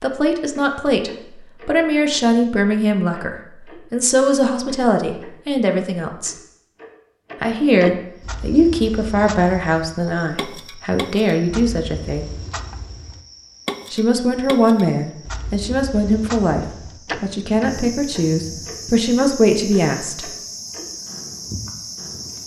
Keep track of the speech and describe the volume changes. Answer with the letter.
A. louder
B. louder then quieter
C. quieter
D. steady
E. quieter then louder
D.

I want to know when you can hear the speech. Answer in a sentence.
The speech can be heard from 0.0 to 6.3 s, from 7.4 to 12.3 s and from 13.9 to 20.2 s.